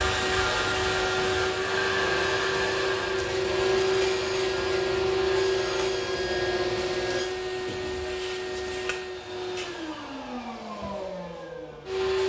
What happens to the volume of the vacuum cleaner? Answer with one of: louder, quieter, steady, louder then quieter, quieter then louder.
quieter.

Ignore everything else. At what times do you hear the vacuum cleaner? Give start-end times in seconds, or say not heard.
0.0-12.2.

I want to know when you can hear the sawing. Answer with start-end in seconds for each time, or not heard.
1.9-7.3.